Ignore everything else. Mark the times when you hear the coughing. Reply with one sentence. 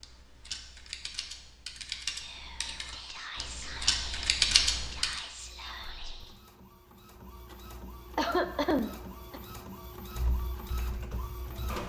The coughing can be heard from 8.2 to 9.4 s.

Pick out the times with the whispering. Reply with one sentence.
You can hear the whispering from 2.0 to 6.4 s.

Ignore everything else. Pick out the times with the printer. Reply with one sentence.
The printer can be heard from 5.3 to 11.8 s.